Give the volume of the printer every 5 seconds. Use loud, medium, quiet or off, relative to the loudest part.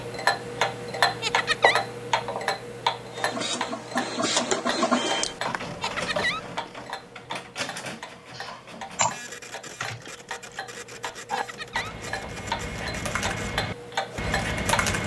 loud, medium, quiet.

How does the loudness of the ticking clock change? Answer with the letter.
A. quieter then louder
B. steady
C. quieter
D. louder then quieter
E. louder
A.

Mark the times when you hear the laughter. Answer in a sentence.
The laughter can be heard from 1.2 to 1.8 s, from 5.8 to 6.4 s and from 11.3 to 11.9 s.